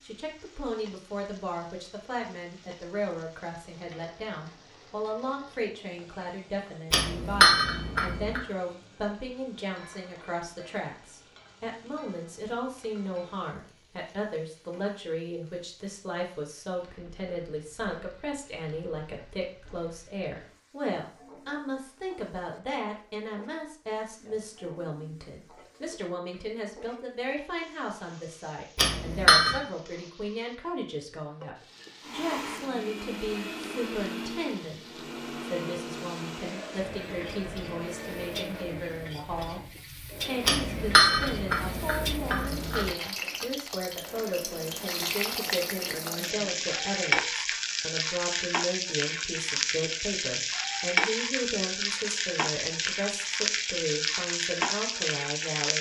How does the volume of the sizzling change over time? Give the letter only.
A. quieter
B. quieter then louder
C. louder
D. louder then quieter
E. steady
C.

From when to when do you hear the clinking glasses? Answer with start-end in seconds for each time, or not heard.
6.9-8.4, 28.8-29.6, 40.5-42.9.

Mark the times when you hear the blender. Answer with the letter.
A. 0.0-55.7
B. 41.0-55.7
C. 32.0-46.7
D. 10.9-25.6
C.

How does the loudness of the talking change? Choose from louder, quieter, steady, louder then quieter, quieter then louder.
steady.